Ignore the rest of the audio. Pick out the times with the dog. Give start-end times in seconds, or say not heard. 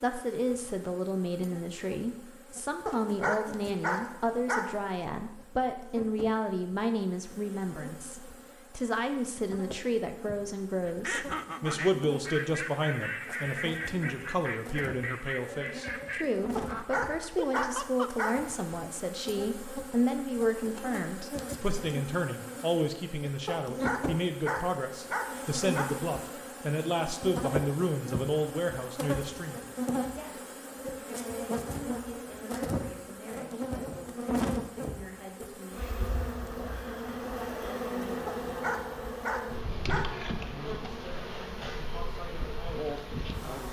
2.9-4.8, 16.6-18.6, 23.4-25.9, 38.2-40.1.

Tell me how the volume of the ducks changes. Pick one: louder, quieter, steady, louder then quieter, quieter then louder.
steady.